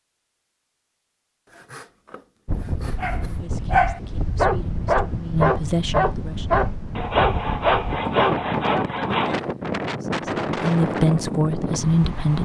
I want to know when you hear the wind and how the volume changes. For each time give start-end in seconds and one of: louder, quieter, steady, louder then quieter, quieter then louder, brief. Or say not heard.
2.5-12.4 louder.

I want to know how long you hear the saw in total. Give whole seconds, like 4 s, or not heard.
4 s.